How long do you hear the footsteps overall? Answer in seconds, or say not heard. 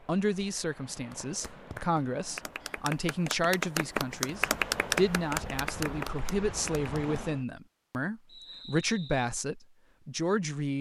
not heard.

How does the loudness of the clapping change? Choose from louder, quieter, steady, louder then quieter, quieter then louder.
louder then quieter.